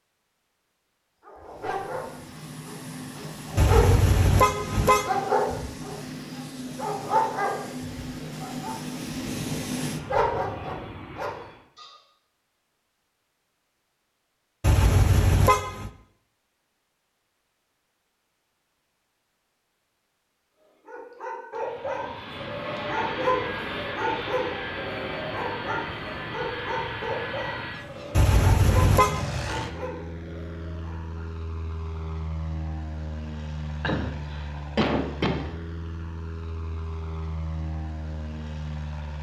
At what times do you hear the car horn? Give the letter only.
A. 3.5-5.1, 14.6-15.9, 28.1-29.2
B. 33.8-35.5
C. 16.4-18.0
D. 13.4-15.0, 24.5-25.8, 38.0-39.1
A.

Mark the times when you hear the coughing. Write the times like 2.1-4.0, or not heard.
33.8-35.5.